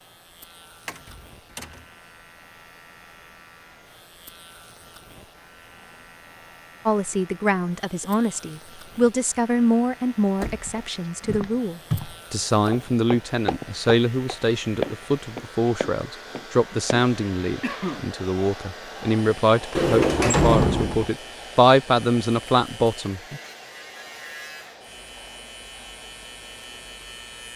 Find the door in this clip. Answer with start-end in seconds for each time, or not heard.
0.8-1.9, 10.4-12.0, 19.8-21.1.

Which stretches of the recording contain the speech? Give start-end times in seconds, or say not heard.
6.8-23.4.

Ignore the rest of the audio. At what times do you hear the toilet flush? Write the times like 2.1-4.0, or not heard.
not heard.